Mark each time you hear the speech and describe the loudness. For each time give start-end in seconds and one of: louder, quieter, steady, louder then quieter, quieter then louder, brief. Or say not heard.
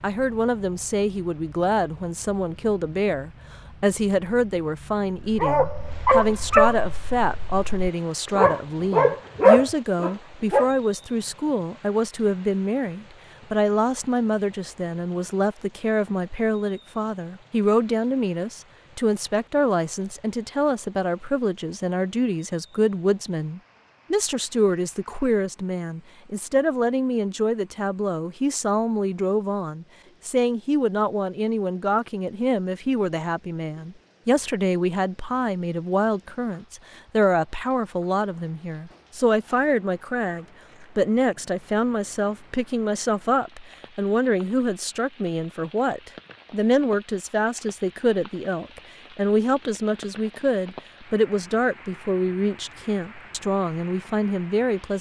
0.0-54.9 steady.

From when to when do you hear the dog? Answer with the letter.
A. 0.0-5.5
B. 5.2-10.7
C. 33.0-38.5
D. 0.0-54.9
B.